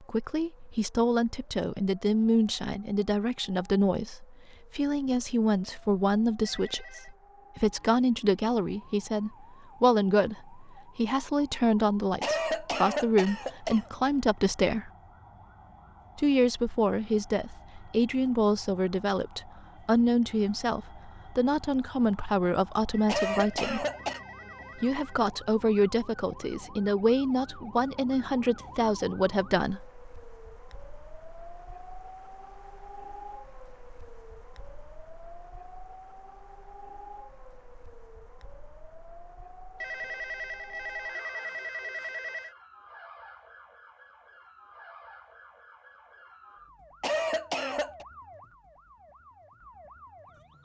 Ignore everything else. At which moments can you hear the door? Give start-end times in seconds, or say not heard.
not heard.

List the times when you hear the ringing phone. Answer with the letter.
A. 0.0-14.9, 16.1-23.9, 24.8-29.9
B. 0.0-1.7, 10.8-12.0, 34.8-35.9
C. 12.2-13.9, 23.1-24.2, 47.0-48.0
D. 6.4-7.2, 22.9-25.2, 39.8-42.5
D.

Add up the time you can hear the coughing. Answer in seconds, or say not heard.
4 s.